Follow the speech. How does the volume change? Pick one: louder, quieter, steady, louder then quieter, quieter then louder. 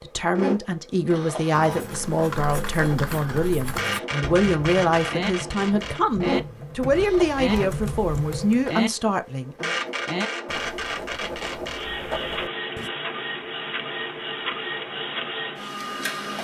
steady.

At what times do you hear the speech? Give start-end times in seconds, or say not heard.
0.0-9.8.